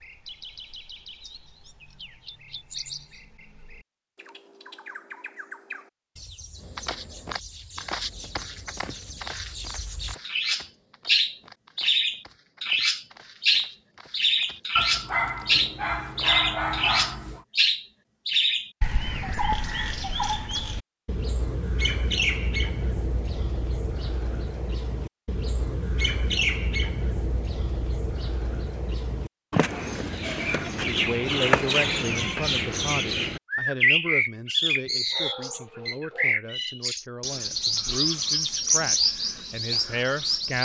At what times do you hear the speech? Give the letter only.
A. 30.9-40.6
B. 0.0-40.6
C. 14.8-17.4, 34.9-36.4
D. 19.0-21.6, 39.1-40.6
A.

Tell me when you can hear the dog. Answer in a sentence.
You can hear the dog from 14.8 to 17.4 s and from 34.9 to 36.4 s.